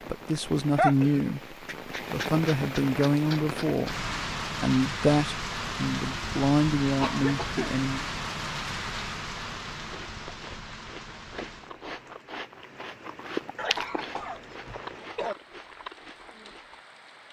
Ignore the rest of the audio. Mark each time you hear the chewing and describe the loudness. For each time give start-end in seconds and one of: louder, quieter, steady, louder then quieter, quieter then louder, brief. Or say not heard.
9.8-16.8 louder then quieter.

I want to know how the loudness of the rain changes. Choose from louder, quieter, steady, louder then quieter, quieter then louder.
quieter.